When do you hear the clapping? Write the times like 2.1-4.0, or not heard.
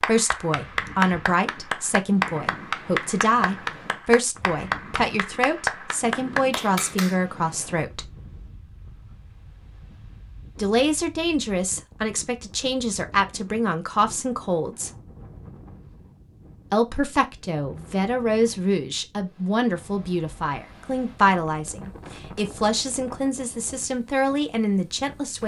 0.0-7.2.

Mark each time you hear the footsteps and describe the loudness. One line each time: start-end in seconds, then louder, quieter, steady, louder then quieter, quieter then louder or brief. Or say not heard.
not heard.